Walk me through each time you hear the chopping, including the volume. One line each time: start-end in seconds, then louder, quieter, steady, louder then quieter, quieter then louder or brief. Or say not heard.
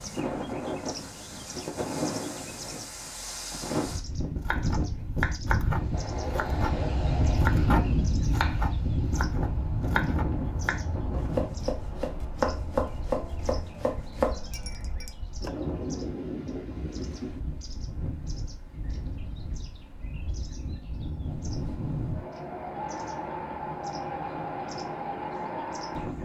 4.4-15.5 steady.